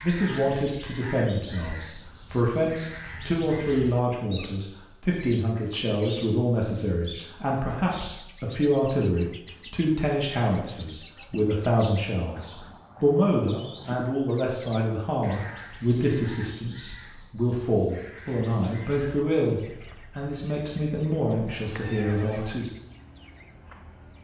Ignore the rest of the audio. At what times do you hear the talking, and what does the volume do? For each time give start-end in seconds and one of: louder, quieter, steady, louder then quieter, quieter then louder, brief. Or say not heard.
0.0-22.7 steady.